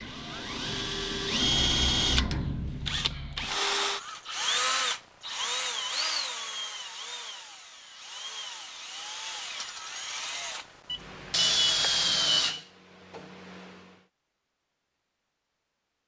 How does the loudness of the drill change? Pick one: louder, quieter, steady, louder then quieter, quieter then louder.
quieter then louder.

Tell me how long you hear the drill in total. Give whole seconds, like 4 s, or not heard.
14 s.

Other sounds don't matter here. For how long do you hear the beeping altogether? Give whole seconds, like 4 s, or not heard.
2 s.